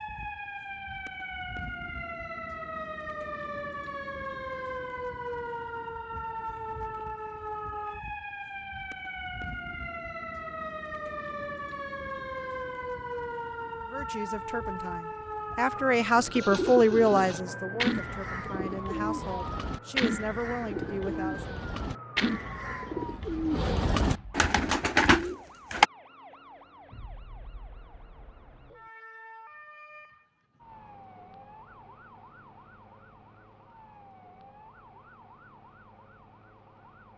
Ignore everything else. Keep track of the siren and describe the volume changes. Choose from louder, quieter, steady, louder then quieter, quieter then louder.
quieter.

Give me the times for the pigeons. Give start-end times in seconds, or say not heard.
16.1-25.9.